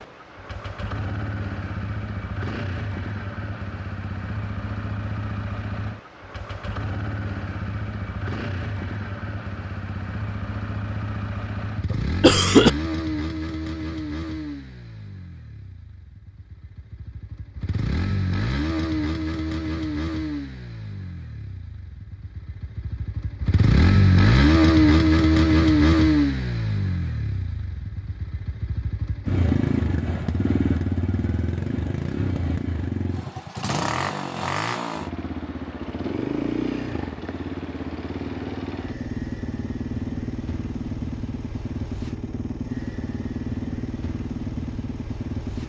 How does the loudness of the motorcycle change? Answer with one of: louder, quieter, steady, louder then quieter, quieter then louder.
louder then quieter.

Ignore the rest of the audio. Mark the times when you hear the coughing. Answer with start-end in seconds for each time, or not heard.
11.9-12.7.